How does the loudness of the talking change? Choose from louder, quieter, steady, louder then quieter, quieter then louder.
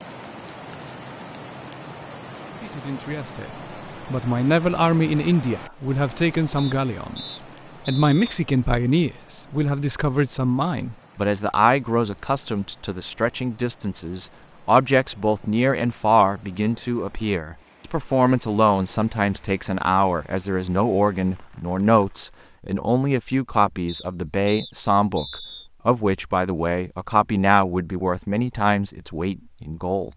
steady.